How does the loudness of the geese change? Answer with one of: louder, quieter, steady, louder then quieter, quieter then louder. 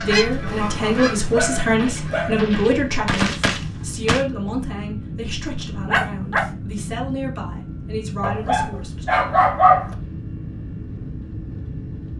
quieter then louder.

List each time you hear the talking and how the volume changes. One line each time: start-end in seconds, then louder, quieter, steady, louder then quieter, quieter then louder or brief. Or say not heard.
0.0-9.1 quieter.